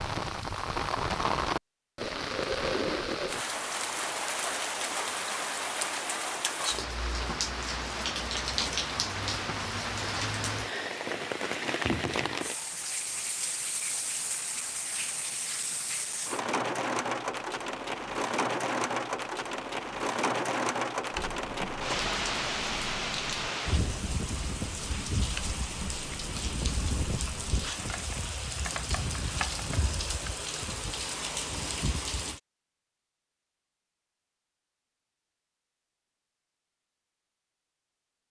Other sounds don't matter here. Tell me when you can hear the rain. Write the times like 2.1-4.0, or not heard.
0.0-32.4.